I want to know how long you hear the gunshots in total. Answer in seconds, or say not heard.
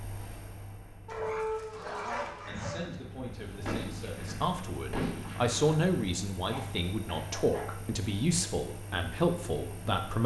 3 s.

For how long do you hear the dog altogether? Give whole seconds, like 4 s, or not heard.
3 s.